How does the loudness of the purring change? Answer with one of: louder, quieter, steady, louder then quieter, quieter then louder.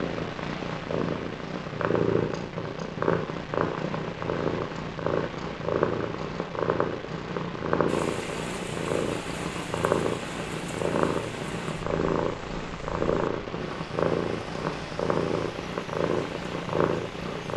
steady.